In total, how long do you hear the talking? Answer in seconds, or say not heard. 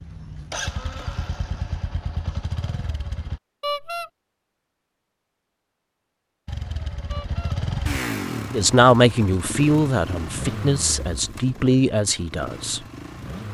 4 s.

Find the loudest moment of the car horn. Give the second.
4 s.